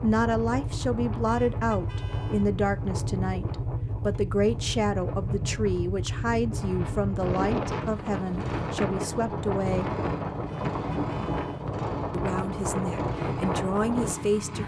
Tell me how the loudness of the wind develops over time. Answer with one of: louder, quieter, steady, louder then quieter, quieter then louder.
louder.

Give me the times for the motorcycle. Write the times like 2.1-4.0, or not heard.
0.0-14.6.